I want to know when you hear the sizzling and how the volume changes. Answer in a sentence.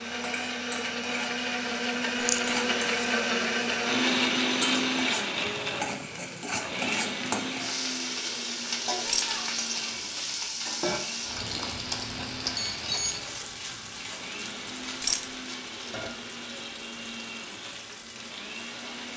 You can hear the sizzling from 0.1 to 19.1 s, getting louder then quieter.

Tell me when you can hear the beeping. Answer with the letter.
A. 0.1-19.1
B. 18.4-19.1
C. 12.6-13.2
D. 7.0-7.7
C.